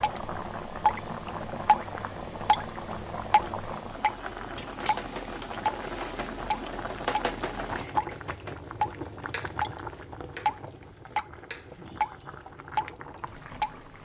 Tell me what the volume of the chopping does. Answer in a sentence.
The volume of the chopping goes up, then down.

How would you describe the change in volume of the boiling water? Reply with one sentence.
The loudness of the boiling water goes down.